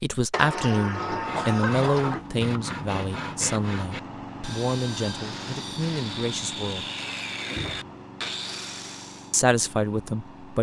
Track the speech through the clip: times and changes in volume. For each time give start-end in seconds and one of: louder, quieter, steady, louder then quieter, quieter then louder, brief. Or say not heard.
0.0-6.8 quieter
9.3-10.5 brief.